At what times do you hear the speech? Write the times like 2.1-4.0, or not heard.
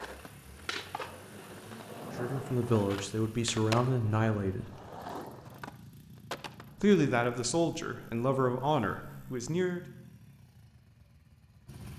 2.1-4.7, 6.8-9.8.